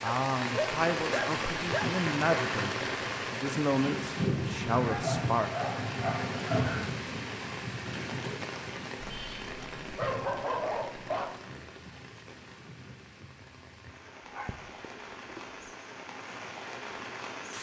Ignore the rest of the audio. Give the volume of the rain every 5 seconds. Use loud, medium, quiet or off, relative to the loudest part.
loud, loud, quiet, medium.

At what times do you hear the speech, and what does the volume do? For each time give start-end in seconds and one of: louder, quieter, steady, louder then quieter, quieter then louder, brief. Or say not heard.
0.0-5.5 steady.